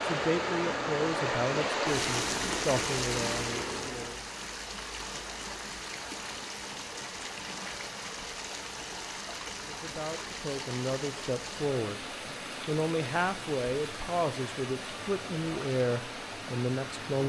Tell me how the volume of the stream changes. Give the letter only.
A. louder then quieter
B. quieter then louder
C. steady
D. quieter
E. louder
D.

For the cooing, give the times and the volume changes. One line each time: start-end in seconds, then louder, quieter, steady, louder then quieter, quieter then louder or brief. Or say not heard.
not heard.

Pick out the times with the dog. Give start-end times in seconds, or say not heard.
not heard.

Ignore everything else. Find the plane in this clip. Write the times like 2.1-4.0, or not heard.
0.0-4.2.